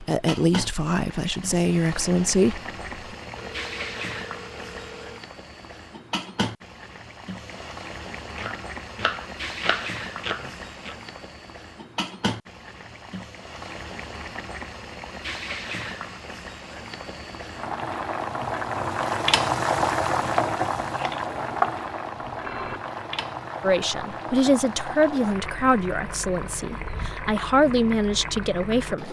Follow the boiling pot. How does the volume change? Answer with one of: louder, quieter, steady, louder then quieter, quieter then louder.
louder then quieter.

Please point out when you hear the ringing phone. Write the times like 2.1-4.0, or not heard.
3.2-5.2, 22.2-22.8.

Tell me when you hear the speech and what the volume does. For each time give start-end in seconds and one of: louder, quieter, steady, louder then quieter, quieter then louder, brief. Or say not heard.
0.0-2.6 brief
23.6-29.0 quieter then louder.